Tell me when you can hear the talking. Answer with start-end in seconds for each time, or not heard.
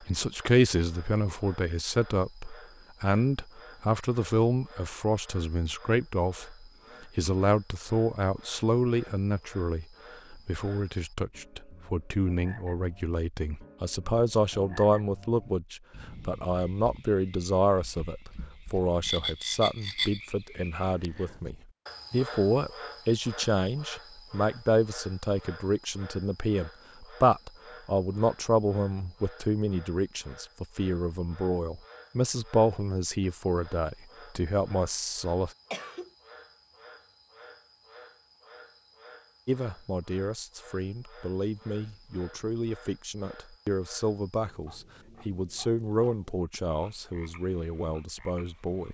0.0-35.5, 39.5-48.8.